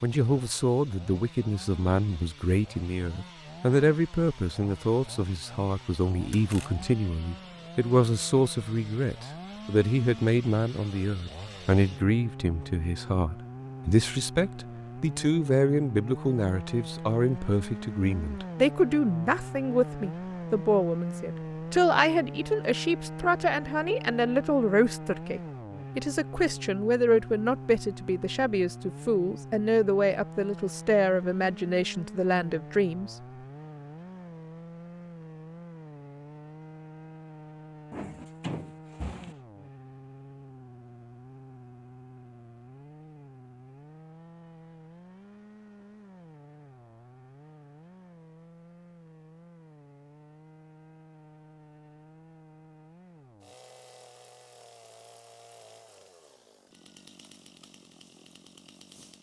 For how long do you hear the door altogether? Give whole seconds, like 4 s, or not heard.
2 s.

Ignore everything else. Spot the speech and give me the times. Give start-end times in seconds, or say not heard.
0.0-33.1.